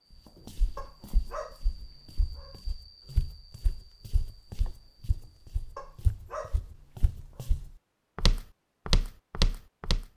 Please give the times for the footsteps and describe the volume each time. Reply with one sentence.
The footsteps can be heard from 0.5 to 10.1 s, getting louder.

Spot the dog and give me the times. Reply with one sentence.
You can hear the dog from 0.8 to 2.6 s and from 5.8 to 7.5 s.